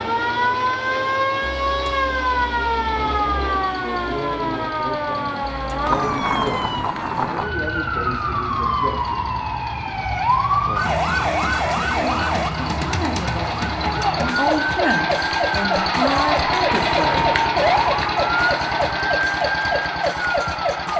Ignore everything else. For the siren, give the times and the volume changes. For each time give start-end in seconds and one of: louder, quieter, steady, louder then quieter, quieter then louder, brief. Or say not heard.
0.0-20.9 steady.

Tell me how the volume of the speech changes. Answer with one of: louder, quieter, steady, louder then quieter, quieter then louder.
louder.